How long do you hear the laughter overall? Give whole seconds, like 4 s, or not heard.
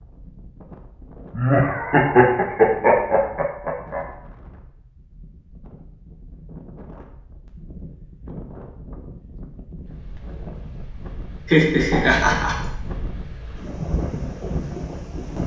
4 s.